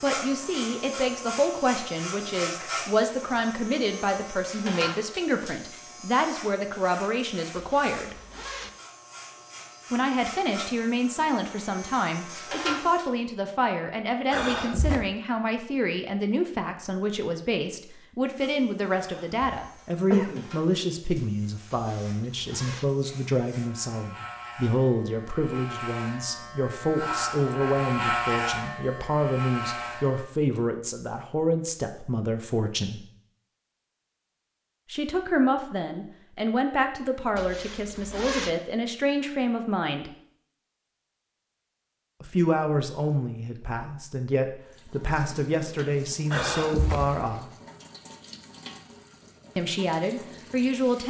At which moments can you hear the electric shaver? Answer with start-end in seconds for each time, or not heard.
0.0-13.1, 18.2-30.2.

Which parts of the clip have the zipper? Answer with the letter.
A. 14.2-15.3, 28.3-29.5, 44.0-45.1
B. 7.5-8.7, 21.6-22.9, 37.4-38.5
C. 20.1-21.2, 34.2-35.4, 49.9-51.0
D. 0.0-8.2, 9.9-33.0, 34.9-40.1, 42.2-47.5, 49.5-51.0
B.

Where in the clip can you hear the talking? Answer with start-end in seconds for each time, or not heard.
0.0-8.2, 9.9-33.0, 34.9-40.1, 42.2-47.5, 49.5-51.0.